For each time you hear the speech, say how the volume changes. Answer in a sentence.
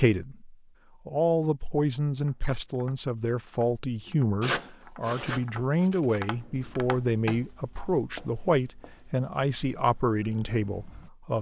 You can hear the speech from 0.0 to 11.3 s, at a steady volume.